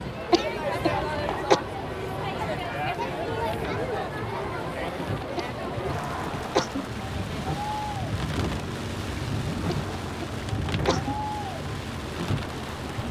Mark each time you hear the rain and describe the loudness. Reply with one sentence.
You can hear the rain from 0.0 to 13.0 s, getting louder.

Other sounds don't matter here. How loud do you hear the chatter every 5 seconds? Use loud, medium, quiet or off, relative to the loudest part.
loud, medium, medium.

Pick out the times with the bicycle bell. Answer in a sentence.
The bicycle bell can't be heard in this clip.